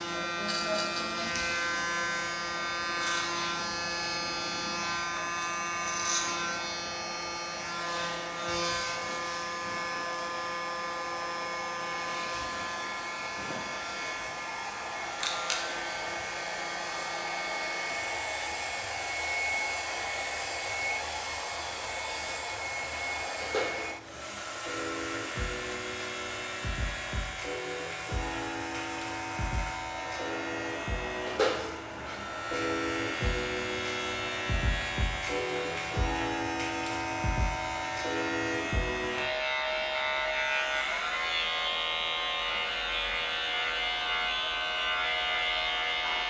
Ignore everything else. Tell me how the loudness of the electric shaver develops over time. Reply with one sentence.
The loudness of the electric shaver goes down, then up.